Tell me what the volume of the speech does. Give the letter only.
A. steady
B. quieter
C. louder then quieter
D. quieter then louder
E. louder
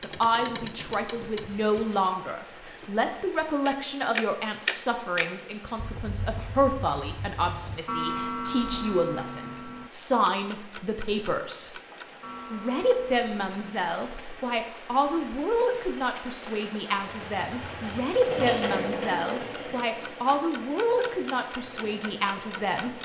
A.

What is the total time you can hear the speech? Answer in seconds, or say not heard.
22 s.